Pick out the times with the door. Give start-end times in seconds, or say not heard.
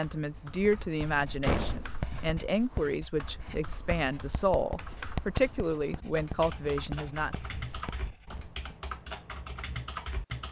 1.4-2.0.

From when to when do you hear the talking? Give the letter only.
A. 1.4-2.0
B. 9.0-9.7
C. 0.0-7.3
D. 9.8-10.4
C.